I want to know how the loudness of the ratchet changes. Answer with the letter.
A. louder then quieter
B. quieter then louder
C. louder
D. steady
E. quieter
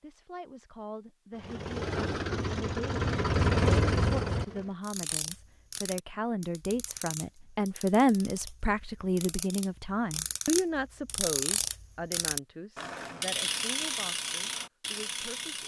B.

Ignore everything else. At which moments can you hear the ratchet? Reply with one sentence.
The ratchet can be heard from 4.8 to 15.6 s.